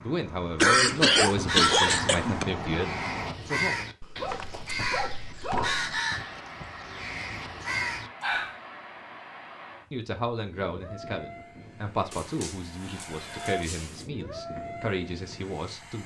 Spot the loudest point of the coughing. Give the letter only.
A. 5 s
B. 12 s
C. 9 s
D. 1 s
D.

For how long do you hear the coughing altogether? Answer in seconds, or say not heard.
2 s.